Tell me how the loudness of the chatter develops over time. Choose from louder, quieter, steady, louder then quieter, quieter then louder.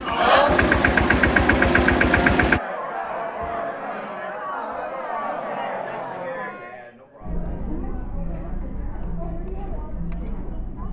quieter.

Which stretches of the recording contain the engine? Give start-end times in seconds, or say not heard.
0.0-2.6.